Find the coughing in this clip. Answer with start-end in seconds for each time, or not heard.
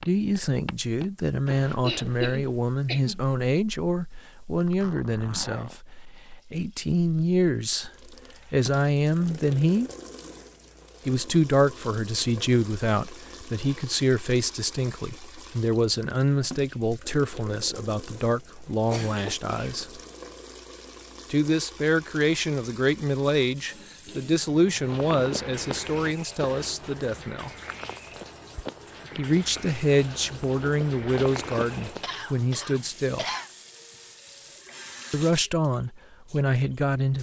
1.8-3.2, 18.9-19.9, 32.0-33.5.